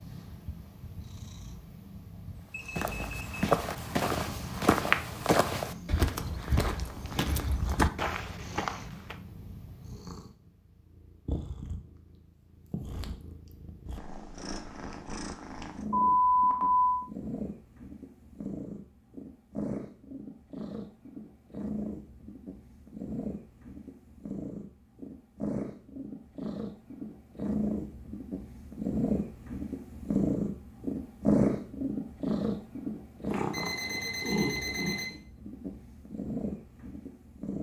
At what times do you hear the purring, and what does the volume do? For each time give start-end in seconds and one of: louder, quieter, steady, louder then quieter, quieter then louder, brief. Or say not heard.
0.0-37.5 louder.